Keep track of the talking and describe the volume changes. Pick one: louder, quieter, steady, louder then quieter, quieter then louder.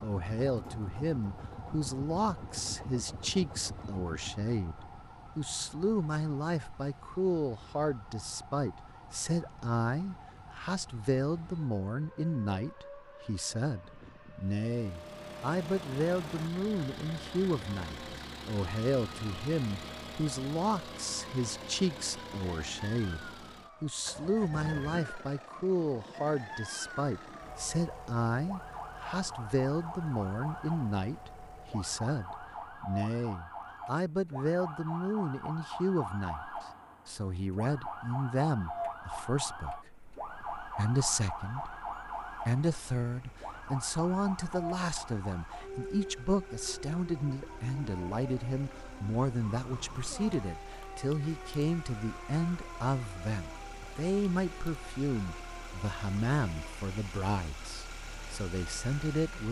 steady.